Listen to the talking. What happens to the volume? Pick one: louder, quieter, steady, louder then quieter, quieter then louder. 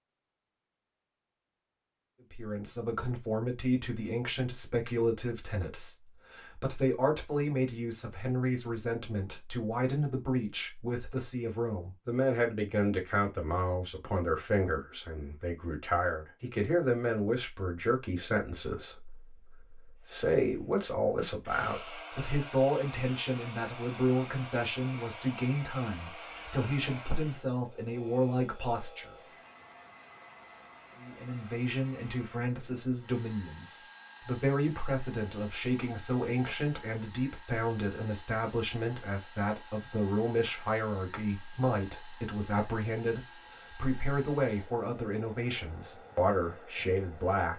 steady.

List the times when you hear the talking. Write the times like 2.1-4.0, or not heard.
2.3-29.1, 30.9-47.5.